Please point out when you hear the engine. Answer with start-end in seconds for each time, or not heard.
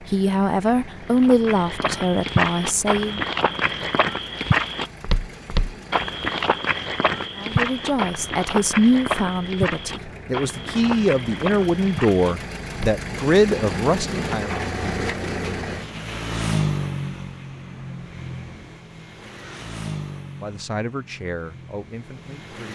0.0-22.7.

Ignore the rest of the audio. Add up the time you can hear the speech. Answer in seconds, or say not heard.
13 s.